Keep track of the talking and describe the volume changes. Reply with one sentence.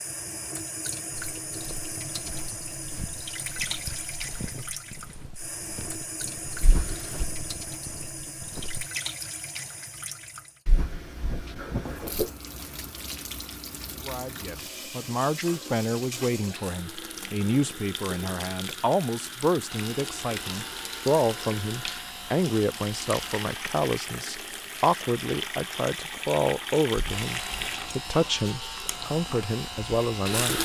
The volume of the talking stays about the same.